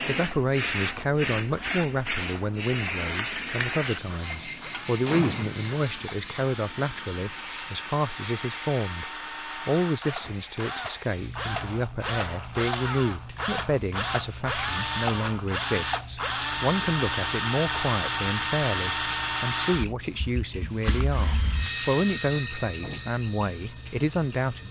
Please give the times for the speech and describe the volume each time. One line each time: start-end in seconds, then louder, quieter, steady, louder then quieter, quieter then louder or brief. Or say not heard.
0.0-24.6 steady.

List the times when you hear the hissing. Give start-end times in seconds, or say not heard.
0.0-24.6.